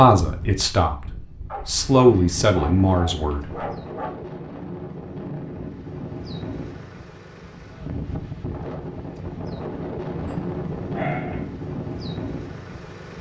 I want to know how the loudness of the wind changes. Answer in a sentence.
The loudness of the wind goes up.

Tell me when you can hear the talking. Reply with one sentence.
The talking can be heard from 0.0 to 3.6 s.